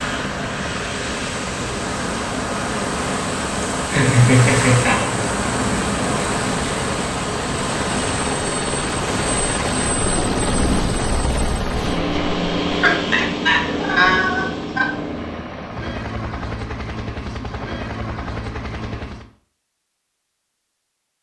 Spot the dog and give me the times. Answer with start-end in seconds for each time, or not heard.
not heard.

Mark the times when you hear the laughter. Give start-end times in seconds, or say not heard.
3.6-5.1, 12.8-14.8.